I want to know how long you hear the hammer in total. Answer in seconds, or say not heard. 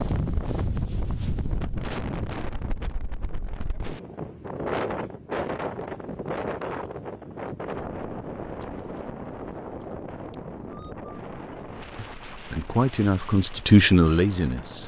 not heard.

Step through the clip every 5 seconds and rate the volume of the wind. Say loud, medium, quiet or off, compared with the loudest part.
loud, loud, medium.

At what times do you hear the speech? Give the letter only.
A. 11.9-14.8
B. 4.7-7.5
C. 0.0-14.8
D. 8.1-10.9
A.